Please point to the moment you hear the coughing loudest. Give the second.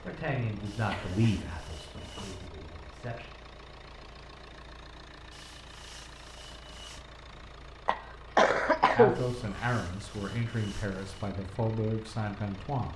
9 s.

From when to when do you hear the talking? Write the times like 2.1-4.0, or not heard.
0.0-3.3, 8.9-12.9.